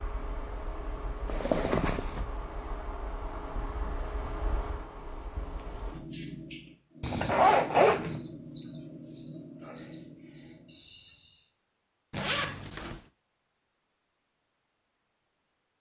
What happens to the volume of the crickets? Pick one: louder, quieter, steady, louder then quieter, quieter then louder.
louder then quieter.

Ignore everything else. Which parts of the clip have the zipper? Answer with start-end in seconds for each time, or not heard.
1.2-2.2, 7.0-8.2, 12.1-13.0.